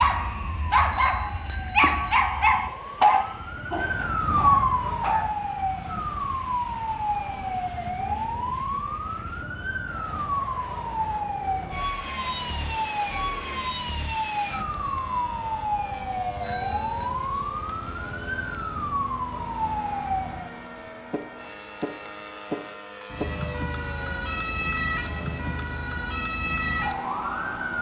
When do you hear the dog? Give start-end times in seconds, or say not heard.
0.0-5.3.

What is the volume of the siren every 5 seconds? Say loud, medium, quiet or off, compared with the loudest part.
loud, loud, loud, loud, medium, loud.